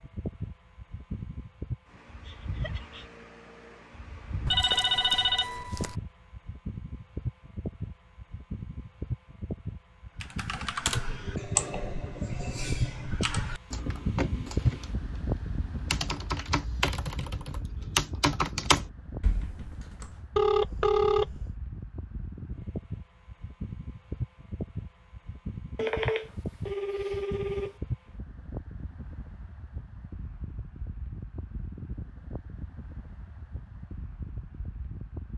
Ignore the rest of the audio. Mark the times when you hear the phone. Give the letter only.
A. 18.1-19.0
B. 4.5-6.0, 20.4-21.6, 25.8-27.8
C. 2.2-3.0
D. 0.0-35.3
B.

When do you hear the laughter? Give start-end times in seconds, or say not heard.
2.2-3.0.